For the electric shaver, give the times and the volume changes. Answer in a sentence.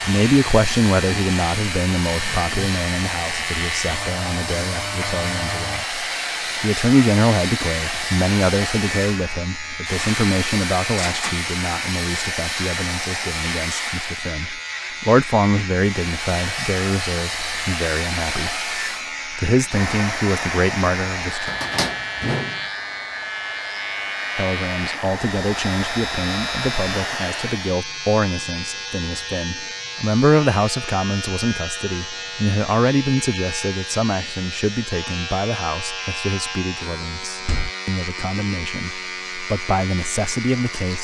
You can hear the electric shaver from 0.0 to 40.9 s, at a steady volume.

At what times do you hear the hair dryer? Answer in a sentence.
You can hear the hair dryer from 0.0 to 14.3 s and from 15.8 to 27.8 s.